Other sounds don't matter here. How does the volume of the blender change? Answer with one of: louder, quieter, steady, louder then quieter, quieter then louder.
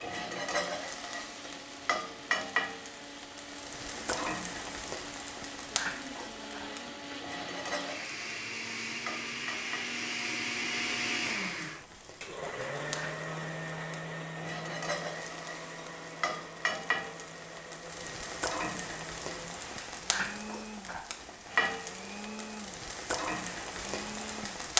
louder then quieter.